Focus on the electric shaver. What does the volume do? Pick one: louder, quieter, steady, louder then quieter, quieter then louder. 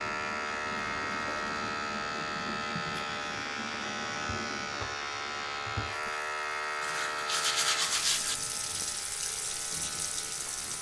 quieter.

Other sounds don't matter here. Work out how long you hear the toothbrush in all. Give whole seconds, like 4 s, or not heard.
4 s.